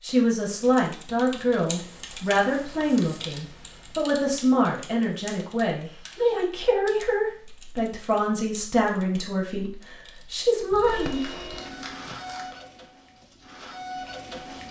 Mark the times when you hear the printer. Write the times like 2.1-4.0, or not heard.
10.8-14.6.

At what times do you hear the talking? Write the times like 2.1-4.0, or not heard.
0.0-11.4.